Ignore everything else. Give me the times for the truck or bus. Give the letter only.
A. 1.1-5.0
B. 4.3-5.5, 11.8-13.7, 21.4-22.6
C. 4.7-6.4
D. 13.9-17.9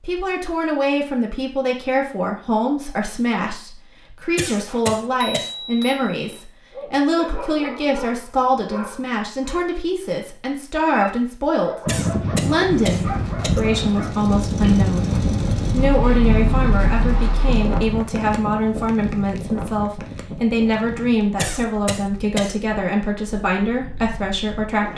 D.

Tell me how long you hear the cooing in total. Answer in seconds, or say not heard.
not heard.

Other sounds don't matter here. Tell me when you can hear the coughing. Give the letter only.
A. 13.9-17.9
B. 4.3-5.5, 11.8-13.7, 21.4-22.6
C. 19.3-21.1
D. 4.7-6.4
B.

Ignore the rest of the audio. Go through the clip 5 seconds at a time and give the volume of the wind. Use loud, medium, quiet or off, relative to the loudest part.
off, off, loud, loud, quiet.